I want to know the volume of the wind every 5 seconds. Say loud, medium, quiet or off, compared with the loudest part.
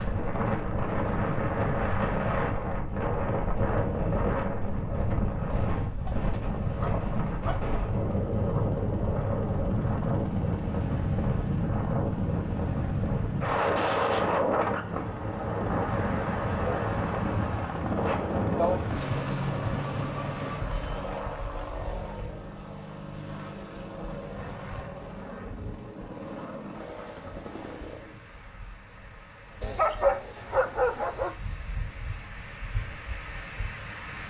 loud, loud, loud, loud, quiet, quiet, quiet.